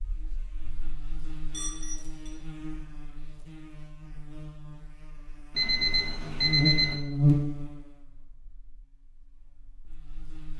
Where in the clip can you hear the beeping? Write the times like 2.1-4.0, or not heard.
1.5-2.3, 5.5-7.0.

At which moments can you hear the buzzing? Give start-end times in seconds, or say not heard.
0.0-10.5.